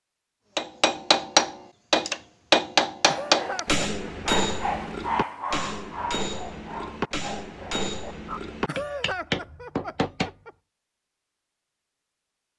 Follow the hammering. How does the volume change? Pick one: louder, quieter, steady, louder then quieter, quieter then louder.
quieter.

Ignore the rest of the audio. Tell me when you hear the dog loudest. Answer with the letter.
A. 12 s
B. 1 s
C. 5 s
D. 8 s
C.